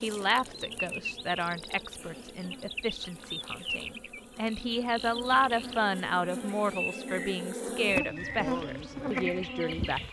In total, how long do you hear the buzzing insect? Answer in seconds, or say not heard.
10 s.